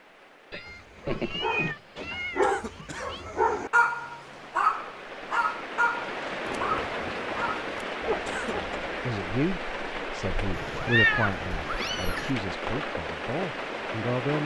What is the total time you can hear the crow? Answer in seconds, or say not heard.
not heard.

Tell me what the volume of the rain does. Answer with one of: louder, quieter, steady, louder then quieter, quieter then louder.
louder.